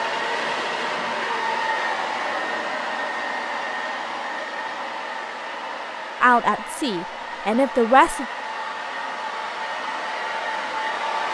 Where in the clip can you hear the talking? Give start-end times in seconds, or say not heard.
6.2-8.2.